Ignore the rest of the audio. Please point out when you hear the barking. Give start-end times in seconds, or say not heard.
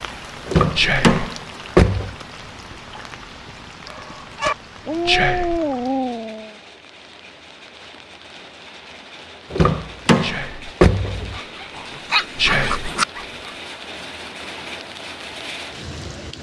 3.9-6.5, 11.2-13.6.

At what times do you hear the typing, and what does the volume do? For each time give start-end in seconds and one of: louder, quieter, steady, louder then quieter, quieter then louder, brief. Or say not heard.
not heard.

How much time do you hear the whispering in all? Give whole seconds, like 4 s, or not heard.
2 s.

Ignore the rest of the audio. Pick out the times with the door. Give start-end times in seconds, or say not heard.
0.5-2.1, 9.5-11.4.